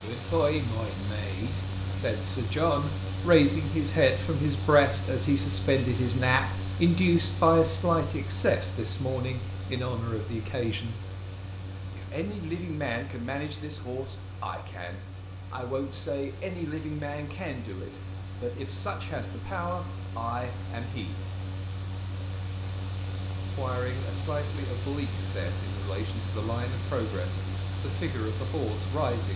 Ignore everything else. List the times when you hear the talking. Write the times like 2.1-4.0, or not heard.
0.0-10.9, 11.9-21.1, 23.6-29.3.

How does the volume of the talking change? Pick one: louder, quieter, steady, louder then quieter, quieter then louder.
quieter.